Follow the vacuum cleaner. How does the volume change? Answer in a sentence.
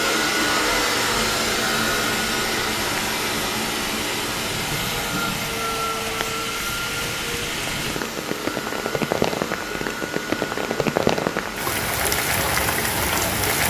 The volume of the vacuum cleaner goes down.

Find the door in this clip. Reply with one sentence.
You can't hear the door here.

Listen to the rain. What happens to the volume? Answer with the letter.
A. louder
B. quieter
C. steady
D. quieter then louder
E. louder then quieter
A.